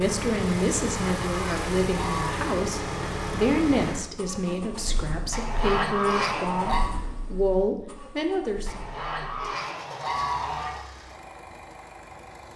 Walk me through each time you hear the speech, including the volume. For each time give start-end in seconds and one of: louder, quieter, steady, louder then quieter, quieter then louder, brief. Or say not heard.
0.0-8.8 steady.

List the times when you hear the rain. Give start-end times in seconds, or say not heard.
not heard.